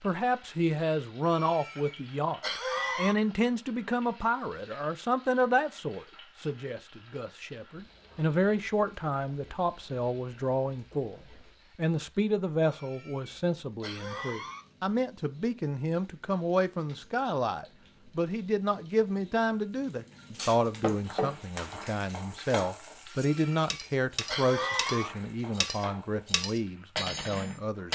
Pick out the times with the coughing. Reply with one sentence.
You can hear the coughing from 1.2 to 3.1 s, from 12.6 to 14.7 s and from 23.1 to 25.1 s.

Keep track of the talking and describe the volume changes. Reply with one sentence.
The volume of the talking stays about the same.